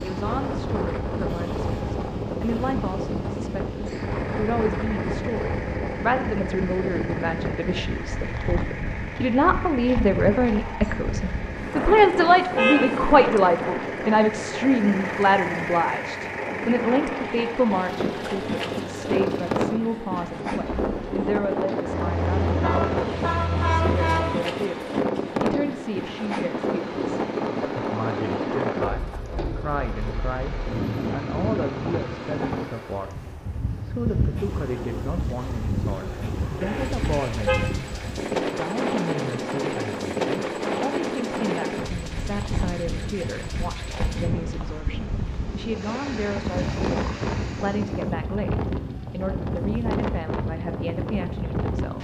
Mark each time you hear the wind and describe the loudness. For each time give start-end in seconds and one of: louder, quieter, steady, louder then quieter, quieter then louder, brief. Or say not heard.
0.0-51.9 steady.